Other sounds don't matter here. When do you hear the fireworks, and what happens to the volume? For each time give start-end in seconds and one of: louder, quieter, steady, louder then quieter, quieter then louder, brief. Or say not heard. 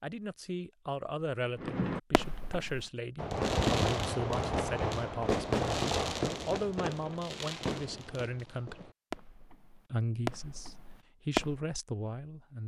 1.6-11.6 quieter.